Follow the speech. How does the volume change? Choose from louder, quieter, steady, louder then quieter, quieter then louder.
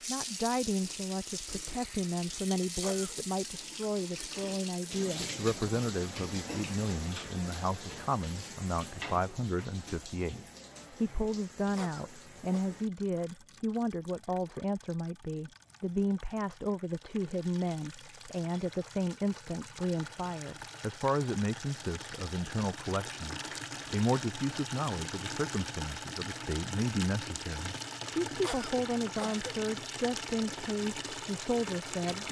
steady.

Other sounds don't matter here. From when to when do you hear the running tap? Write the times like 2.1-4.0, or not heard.
0.0-32.2.